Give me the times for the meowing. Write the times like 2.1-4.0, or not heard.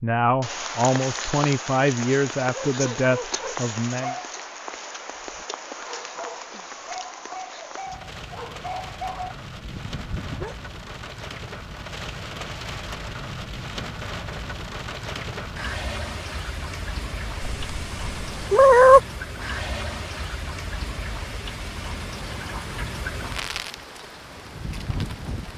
17.4-19.0.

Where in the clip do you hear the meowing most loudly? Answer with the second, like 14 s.
19 s.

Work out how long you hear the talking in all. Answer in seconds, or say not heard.
4 s.